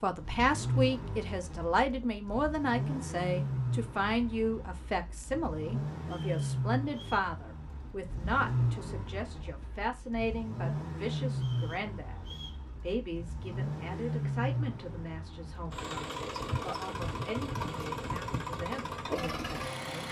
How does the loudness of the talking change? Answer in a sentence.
The volume of the talking goes down.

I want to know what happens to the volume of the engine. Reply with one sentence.
The loudness of the engine stays about the same.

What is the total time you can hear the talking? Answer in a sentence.
The talking can be heard for 20 seconds in total.